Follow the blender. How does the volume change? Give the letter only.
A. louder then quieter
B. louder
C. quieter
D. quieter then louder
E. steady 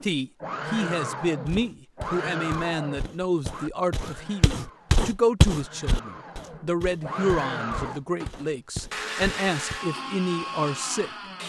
D.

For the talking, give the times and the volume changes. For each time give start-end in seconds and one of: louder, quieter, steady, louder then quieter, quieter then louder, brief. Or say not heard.
0.0-11.1 steady.